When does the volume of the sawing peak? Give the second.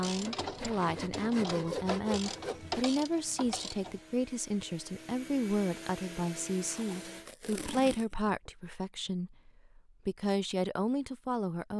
2 s.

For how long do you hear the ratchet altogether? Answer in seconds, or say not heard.
4 s.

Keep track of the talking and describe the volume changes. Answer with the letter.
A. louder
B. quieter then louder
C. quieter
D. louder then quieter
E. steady
E.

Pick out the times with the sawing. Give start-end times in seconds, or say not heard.
0.0-2.9.